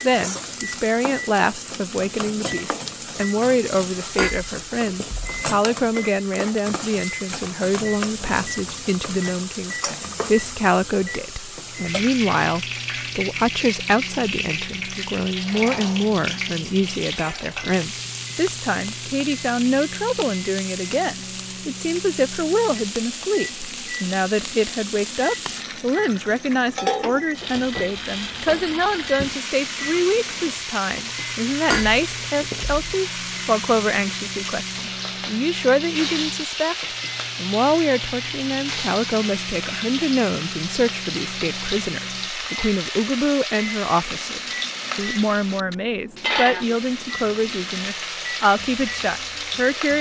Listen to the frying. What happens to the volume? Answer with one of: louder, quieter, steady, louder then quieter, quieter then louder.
steady.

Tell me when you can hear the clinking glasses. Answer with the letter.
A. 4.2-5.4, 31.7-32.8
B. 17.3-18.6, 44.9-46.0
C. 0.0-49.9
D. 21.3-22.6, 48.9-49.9
A.